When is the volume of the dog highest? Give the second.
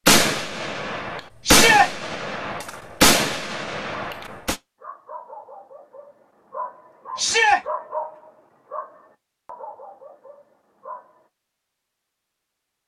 8 s.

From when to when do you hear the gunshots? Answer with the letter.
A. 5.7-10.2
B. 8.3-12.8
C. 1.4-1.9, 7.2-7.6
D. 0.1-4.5
D.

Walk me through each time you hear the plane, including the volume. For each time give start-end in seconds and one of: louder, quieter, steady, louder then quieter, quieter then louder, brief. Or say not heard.
not heard.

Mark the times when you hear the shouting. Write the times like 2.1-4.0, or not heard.
1.4-1.9, 7.2-7.6.